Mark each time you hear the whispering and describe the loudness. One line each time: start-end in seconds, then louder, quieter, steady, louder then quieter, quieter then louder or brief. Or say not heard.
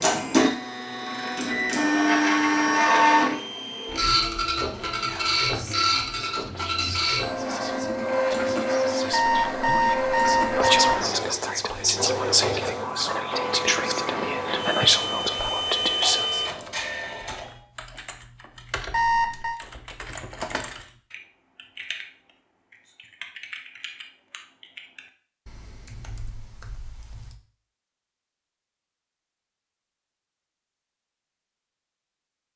5.0-16.4 louder.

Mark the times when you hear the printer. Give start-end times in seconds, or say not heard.
0.0-17.6.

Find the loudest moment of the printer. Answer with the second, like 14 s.
3 s.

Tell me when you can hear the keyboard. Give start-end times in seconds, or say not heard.
16.4-27.4.